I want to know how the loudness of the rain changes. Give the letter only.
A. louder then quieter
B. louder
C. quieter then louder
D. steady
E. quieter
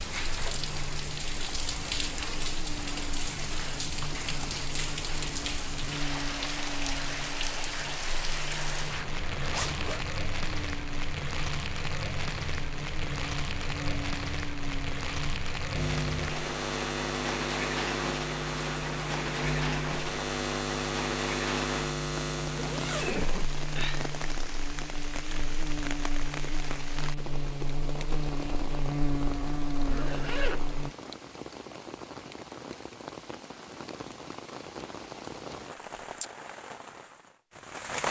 E.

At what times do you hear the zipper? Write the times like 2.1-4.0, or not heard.
8.7-10.0, 22.6-23.6, 29.9-31.1.